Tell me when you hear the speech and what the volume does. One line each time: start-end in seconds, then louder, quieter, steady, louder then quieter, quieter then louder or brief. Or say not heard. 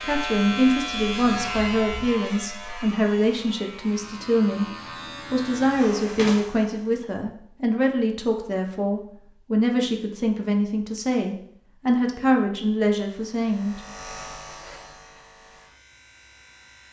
0.0-13.8 steady.